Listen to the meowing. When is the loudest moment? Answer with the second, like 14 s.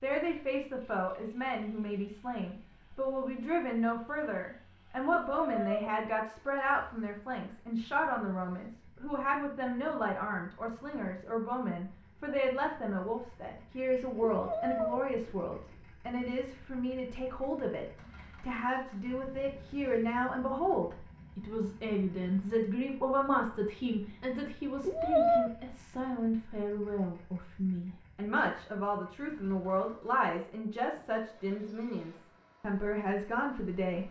25 s.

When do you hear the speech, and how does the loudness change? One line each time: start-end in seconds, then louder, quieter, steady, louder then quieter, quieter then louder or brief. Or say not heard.
0.0-34.0 steady.